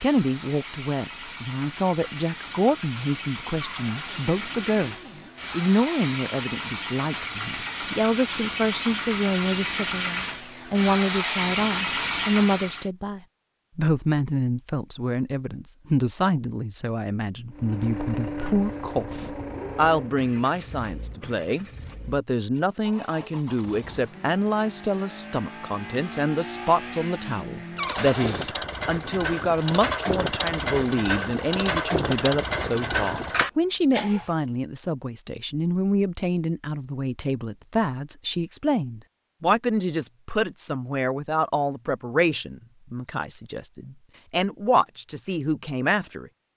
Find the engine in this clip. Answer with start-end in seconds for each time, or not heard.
0.0-12.9, 17.5-34.3.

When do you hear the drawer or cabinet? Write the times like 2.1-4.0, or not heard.
3.5-5.3, 27.8-28.6.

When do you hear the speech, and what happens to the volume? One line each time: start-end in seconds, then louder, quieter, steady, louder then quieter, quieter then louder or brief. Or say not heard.
0.0-46.3 steady.